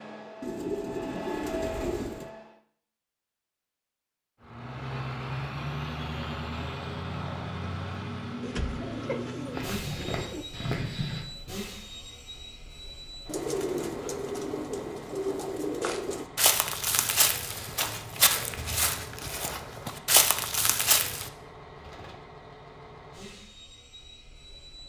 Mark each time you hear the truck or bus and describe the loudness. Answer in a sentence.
The truck or bus can be heard briefly from 0.0 to 2.5 s; and from 4.4 to 24.8 s, getting quieter.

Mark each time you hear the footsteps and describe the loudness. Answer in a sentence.
You can hear the footsteps briefly from 9.5 to 11.2 s; and from 15.8 to 21.3 s, getting quieter then louder.